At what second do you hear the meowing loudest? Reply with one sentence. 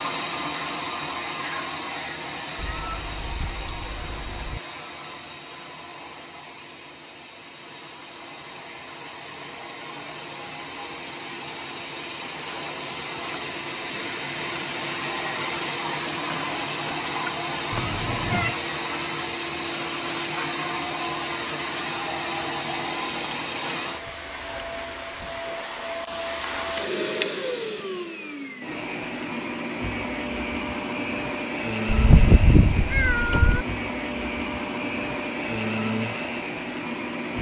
The loudest moment of the meowing is at 32 seconds.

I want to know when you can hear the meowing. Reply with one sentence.
You can hear the meowing from 2.5 to 4.6 s, from 17.7 to 18.6 s and from 31.9 to 33.6 s.